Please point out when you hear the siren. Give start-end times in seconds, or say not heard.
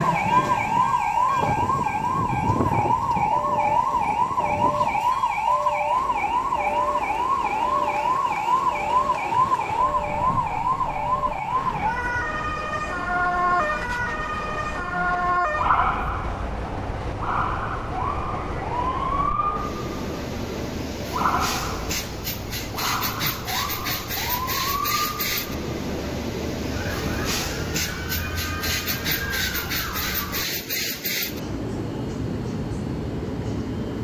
0.0-30.4.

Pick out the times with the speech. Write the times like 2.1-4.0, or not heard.
not heard.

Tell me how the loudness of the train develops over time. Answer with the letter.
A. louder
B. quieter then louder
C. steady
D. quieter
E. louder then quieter
A.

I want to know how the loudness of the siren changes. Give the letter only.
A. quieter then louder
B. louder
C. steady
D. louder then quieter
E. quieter
E.